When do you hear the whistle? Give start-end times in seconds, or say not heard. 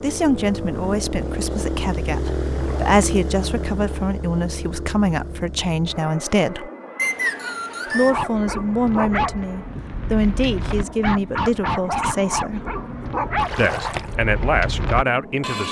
7.0-8.2.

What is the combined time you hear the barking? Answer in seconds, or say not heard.
8 s.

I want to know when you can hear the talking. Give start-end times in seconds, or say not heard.
0.0-6.7, 7.9-12.7, 13.6-15.6.